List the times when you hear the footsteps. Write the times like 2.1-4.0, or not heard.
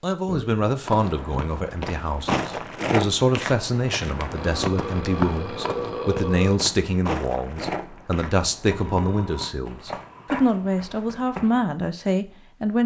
0.8-11.7.